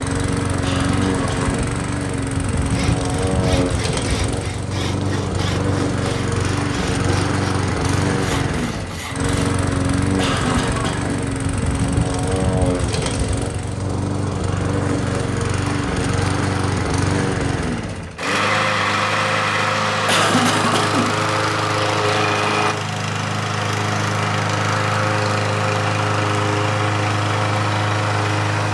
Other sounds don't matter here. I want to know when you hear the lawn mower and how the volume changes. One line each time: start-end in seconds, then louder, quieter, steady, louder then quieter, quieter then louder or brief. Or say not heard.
0.0-28.6 steady.